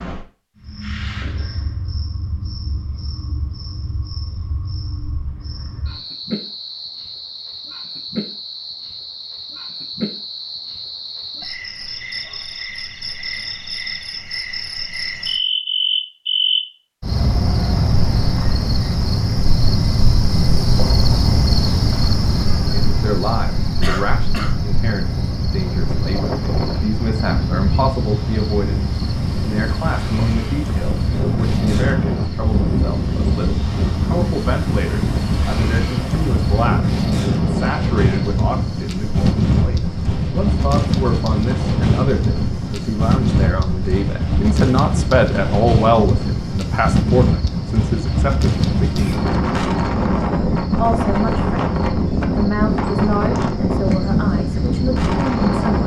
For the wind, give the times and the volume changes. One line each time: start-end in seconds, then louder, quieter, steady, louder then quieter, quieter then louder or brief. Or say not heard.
25.1-55.8 louder.